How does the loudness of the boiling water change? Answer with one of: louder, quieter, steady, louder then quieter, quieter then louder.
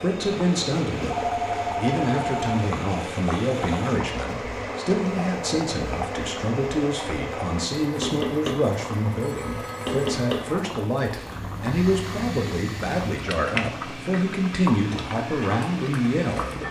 steady.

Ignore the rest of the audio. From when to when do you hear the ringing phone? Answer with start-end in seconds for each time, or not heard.
1.1-2.7, 9.2-10.0.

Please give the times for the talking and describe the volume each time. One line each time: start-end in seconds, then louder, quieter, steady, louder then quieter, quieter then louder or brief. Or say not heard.
0.0-16.6 steady.